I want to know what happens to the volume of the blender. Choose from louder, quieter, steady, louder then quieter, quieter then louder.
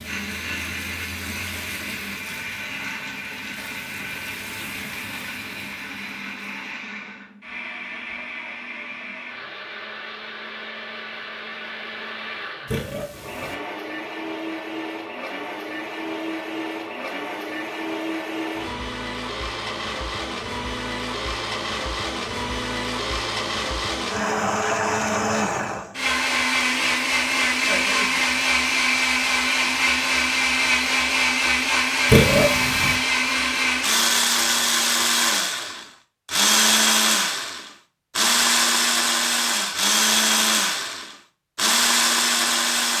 louder.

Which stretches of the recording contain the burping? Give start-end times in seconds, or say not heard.
12.7-13.6, 32.0-33.0.